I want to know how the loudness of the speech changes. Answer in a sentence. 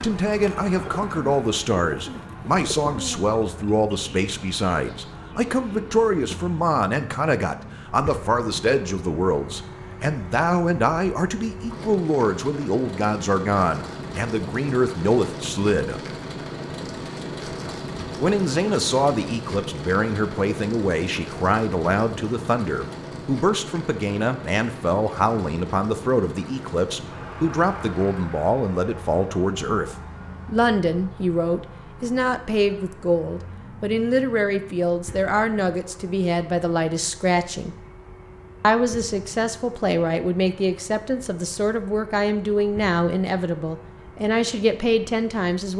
The loudness of the speech stays about the same.